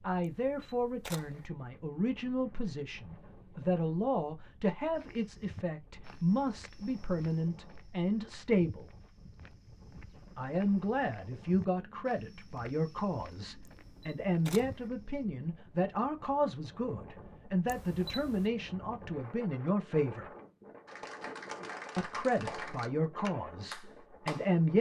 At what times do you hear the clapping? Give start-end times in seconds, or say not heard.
20.9-24.6.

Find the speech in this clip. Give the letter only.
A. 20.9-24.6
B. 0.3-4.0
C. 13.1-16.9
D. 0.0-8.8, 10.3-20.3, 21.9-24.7
D.